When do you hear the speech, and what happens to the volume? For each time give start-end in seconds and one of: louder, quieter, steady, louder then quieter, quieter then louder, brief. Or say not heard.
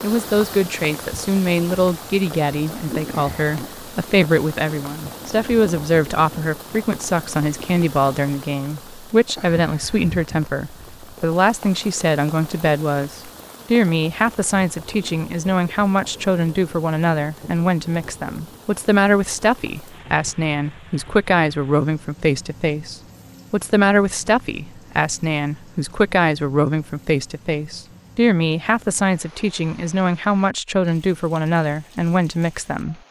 0.0-33.0 steady.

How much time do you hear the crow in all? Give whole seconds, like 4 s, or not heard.
not heard.